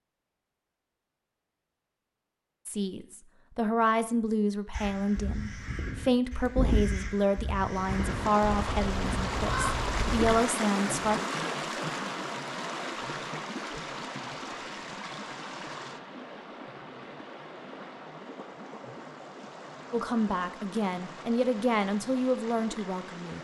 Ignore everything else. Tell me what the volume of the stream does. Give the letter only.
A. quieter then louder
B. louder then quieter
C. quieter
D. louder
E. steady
C.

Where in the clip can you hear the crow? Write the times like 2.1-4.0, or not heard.
4.7-10.3.